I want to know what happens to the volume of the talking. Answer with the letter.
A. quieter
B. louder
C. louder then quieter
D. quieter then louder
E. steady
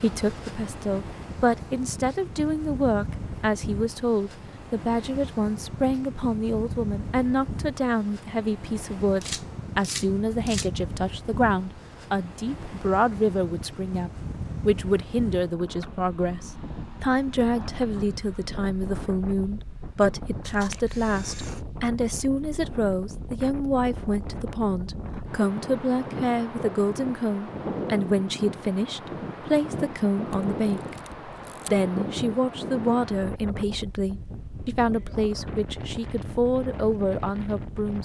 E.